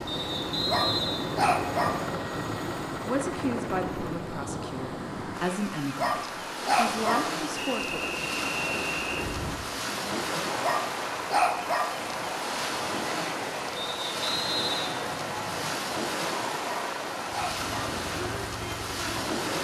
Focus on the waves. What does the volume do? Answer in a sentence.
The loudness of the waves stays about the same.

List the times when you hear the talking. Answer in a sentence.
The talking can be heard from 3.0 to 8.0 s.